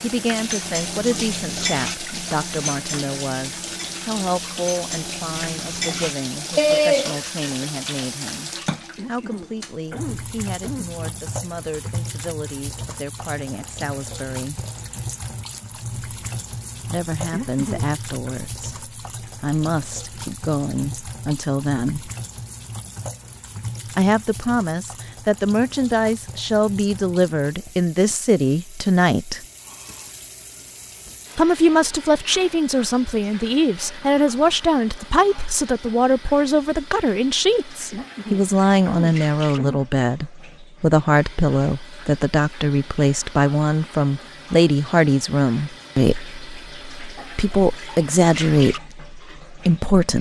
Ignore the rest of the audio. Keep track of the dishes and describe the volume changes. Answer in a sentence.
The loudness of the dishes goes down, then up.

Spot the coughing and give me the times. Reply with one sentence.
You can hear the coughing from 8.9 to 10.9 s, from 17.3 to 18.4 s and from 37.9 to 39.9 s.